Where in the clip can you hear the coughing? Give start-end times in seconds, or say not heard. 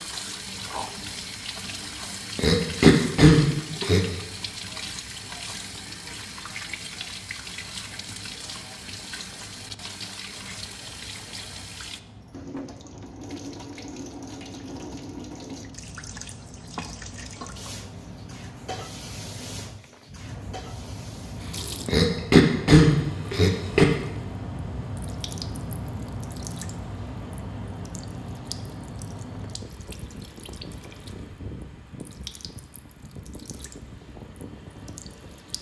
2.4-4.0, 21.9-23.9.